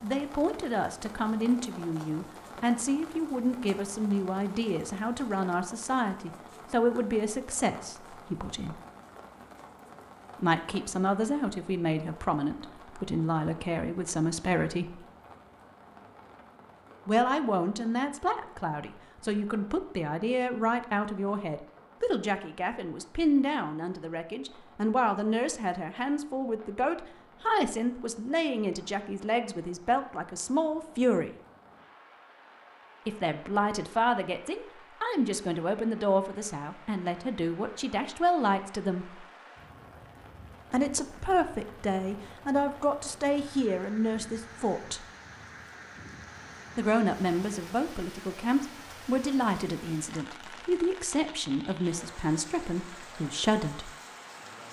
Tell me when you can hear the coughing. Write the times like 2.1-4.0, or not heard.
not heard.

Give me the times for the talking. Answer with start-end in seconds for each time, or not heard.
0.0-8.8, 10.3-15.1, 17.1-31.3, 33.0-39.2, 40.7-45.0, 46.8-53.9.